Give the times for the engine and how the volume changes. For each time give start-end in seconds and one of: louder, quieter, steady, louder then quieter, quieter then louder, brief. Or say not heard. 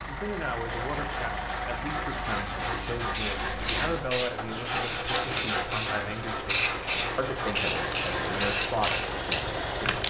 0.0-10.0 quieter then louder.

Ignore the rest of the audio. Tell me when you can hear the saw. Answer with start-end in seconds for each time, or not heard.
0.6-10.0.